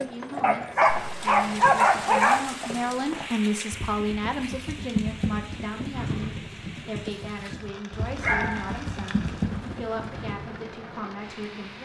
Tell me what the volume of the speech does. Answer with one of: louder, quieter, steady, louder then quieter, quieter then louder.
louder then quieter.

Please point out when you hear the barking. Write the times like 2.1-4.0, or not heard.
0.4-2.5, 8.2-9.5.